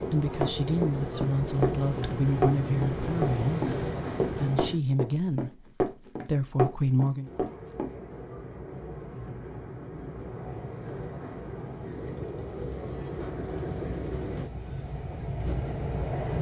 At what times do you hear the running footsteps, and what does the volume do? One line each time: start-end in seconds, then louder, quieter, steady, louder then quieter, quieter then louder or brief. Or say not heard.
0.0-7.9 steady.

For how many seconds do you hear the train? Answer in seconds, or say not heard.
14 s.